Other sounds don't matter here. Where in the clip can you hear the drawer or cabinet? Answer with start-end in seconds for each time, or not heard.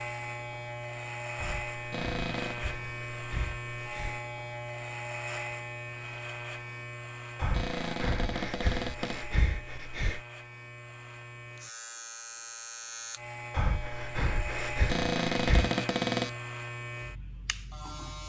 1.9-2.6, 7.5-9.2, 14.8-16.4.